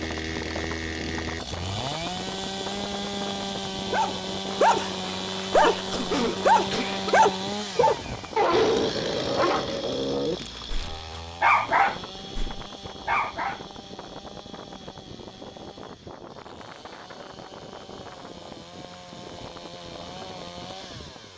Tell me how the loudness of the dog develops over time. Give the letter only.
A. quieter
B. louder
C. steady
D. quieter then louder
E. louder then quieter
D.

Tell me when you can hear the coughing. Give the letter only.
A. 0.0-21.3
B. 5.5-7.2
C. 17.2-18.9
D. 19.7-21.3
B.